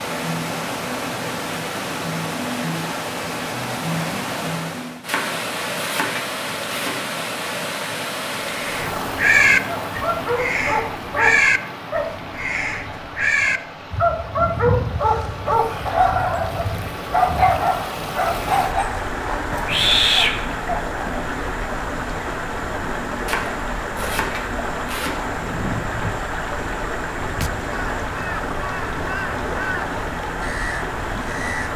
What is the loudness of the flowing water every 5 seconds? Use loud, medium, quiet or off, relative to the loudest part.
loud, loud, medium, loud, loud, loud, loud.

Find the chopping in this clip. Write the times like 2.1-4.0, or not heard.
5.0-7.0, 23.2-25.4.